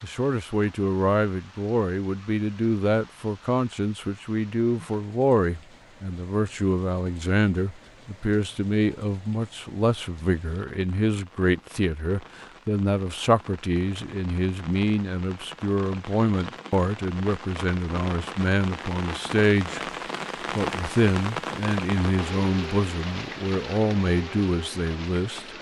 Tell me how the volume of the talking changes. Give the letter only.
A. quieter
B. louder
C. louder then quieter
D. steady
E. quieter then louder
D.